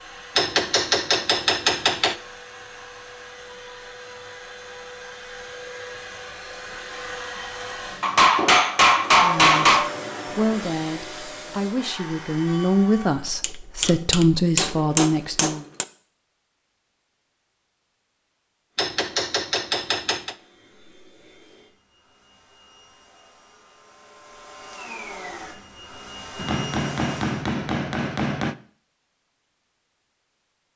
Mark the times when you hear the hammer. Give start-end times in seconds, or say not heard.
0.3-2.1, 8.0-9.9, 13.4-15.8, 18.8-20.3, 26.4-28.6.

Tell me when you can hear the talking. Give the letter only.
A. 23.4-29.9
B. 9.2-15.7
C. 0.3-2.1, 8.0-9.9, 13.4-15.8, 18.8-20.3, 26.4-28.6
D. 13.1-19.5
B.